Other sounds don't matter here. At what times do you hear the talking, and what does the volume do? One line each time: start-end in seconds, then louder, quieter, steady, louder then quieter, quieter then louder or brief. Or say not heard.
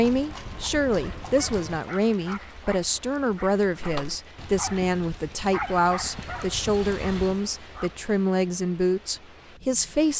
0.0-10.1 steady.